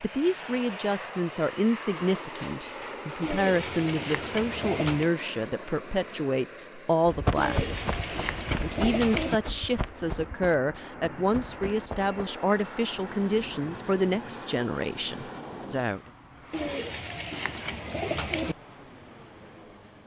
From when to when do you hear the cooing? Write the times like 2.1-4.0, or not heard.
3.2-5.1, 7.3-9.3, 16.5-18.6.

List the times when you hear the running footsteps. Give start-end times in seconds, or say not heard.
7.0-12.2.